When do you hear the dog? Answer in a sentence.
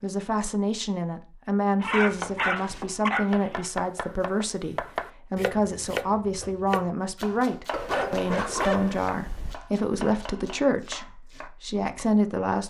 The dog can be heard from 1.8 to 3.7 s and from 7.7 to 9.6 s.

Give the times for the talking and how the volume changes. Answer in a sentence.
The talking can be heard from 0.0 to 12.6 s, at a steady volume.